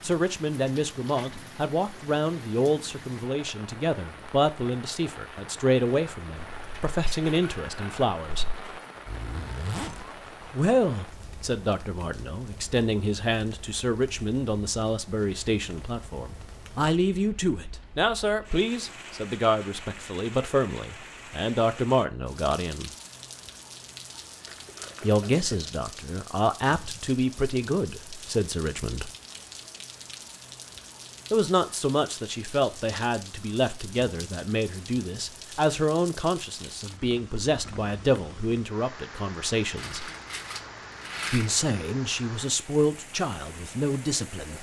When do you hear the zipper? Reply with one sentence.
The zipper can be heard from 9.1 to 10.6 s.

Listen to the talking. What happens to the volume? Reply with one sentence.
The loudness of the talking stays about the same.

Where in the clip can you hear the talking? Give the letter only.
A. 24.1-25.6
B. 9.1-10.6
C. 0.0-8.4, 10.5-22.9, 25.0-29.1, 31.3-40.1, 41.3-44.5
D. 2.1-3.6
C.